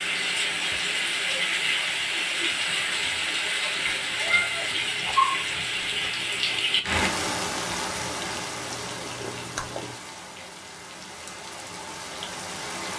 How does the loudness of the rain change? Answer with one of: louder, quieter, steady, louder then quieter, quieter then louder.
quieter.